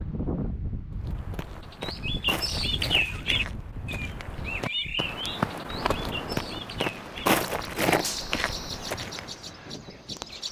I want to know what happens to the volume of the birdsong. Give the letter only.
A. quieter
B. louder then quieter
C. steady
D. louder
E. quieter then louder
A.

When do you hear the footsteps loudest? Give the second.
7 s.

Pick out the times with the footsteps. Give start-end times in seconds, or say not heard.
1.0-9.4.